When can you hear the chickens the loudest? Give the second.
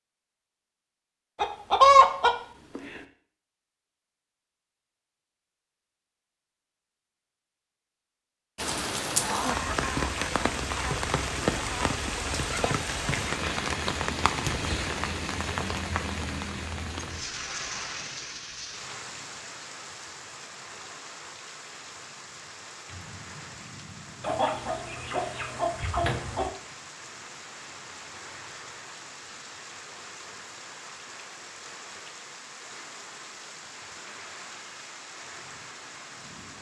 2 s.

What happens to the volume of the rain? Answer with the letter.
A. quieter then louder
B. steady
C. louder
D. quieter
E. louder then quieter
D.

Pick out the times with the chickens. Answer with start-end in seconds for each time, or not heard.
1.4-2.8, 24.2-26.5.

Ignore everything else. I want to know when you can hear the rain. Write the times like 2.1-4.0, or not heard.
8.6-36.5.